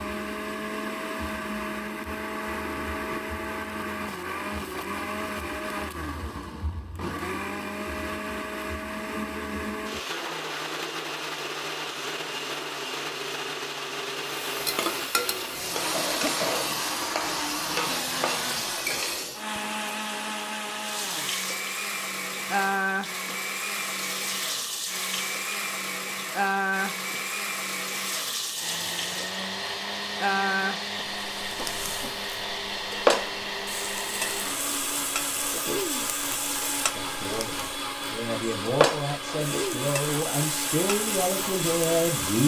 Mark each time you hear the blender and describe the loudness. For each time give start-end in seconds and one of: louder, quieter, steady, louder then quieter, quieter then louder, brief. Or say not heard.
0.0-42.4 steady.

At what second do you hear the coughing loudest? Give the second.
16 s.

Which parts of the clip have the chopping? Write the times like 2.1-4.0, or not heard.
not heard.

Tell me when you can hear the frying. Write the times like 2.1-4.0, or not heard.
14.3-19.4, 20.8-42.4.